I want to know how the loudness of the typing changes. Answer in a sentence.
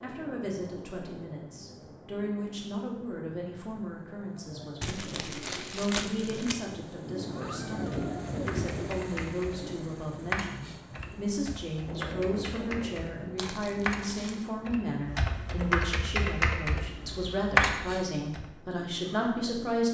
The loudness of the typing goes up.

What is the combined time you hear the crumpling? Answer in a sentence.
The crumpling can be heard for 3 seconds in total.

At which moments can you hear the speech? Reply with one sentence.
The speech can be heard from 0.0 to 19.8 s.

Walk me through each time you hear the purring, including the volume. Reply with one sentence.
You can't hear the purring here.